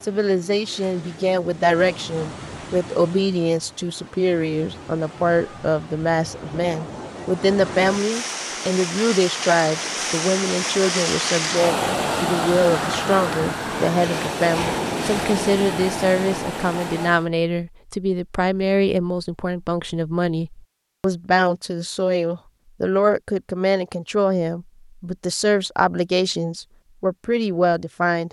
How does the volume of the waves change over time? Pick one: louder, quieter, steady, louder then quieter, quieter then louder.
louder.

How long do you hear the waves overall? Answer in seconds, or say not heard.
17 s.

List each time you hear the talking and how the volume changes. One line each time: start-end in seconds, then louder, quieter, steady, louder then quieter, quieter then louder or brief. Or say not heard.
0.0-28.2 steady.